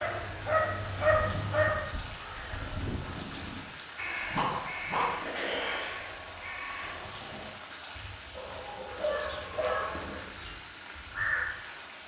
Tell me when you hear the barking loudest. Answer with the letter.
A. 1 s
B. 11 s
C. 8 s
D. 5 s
A.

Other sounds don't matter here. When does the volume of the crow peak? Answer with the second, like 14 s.
11 s.